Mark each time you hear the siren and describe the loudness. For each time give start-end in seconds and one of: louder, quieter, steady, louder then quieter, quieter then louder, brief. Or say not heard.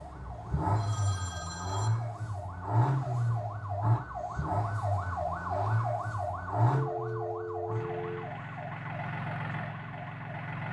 0.0-10.6 louder then quieter.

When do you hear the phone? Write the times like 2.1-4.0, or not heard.
0.8-1.9, 6.7-8.2.